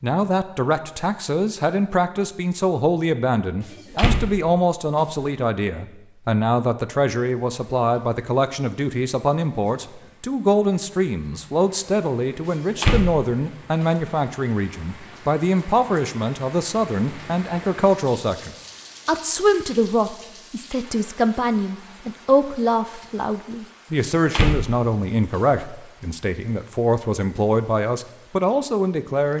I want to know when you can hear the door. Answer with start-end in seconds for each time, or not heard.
3.7-5.2, 12.6-14.1, 24.2-24.9.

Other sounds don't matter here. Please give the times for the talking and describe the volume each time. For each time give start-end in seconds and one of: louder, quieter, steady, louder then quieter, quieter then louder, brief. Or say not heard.
0.0-29.3 steady.